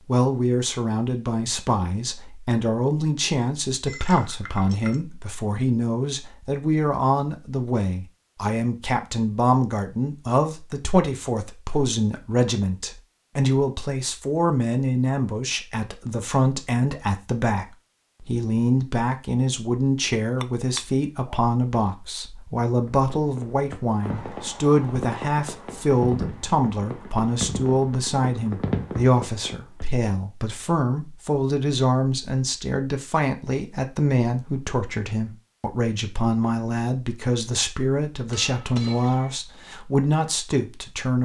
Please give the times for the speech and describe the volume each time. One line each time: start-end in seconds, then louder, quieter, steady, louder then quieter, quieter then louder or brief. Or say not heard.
0.1-41.2 steady.